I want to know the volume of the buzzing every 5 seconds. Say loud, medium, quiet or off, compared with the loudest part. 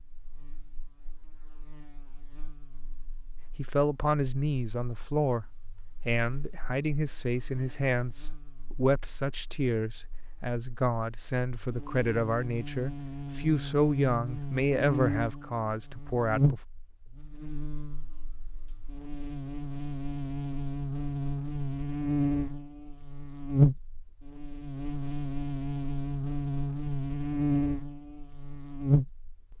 quiet, quiet, medium, medium, loud, loud.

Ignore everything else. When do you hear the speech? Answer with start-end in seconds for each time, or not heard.
3.5-5.5, 6.0-16.6.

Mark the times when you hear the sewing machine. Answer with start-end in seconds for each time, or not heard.
not heard.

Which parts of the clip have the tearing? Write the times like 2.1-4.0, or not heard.
not heard.